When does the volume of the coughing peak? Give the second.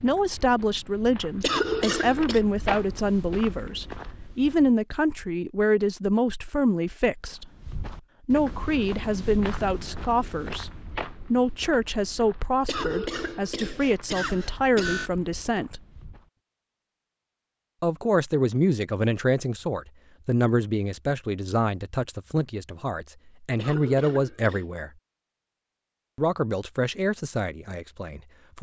2 s.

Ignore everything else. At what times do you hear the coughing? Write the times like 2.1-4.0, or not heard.
1.4-2.4, 12.7-15.1, 23.6-24.7.